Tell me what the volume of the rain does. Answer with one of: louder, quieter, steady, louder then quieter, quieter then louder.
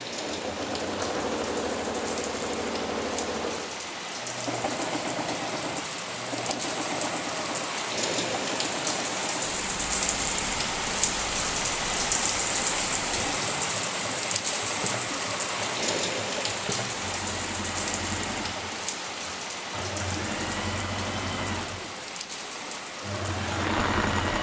louder then quieter.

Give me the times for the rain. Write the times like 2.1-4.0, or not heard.
0.0-24.3.